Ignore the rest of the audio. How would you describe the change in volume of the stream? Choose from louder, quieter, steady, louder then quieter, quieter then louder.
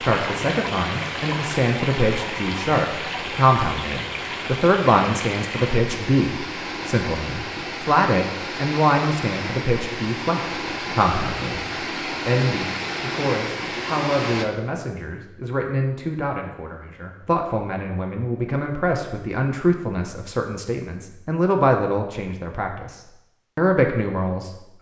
steady.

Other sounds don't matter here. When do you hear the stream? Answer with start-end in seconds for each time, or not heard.
0.0-14.4.